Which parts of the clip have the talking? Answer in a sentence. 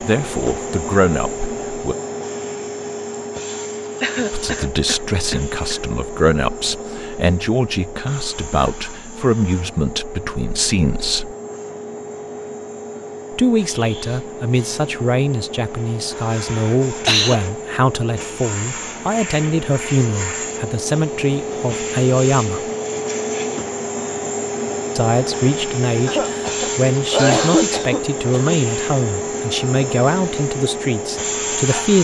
You can hear the talking from 0.0 to 1.9 s, from 4.3 to 11.3 s, from 13.3 to 22.6 s and from 24.9 to 31.9 s.